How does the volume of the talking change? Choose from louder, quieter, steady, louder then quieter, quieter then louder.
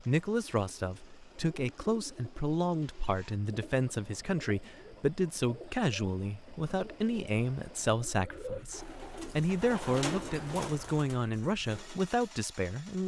steady.